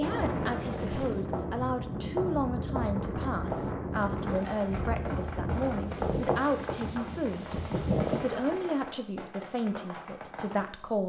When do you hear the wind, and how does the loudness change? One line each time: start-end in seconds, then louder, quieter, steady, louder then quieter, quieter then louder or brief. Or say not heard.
0.0-8.4 steady.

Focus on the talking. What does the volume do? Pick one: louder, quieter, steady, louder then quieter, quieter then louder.
steady.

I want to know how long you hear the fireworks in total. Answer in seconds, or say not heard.
11 s.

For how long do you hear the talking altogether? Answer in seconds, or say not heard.
11 s.